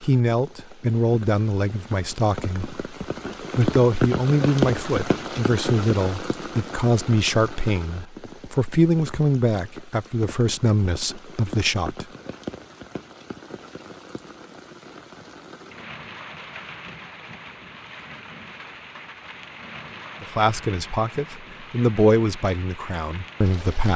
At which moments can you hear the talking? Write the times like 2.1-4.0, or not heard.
0.0-2.8, 3.5-12.1, 20.2-23.9.